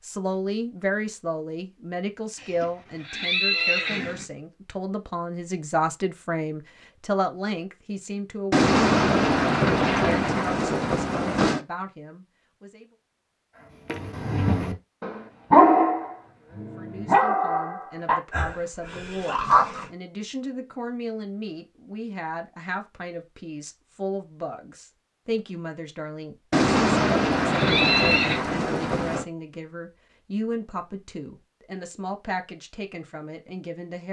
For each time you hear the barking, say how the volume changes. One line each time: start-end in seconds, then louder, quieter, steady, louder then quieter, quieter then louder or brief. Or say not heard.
13.9-19.9 louder then quieter.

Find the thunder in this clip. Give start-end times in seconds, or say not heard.
8.5-11.6, 26.5-29.2.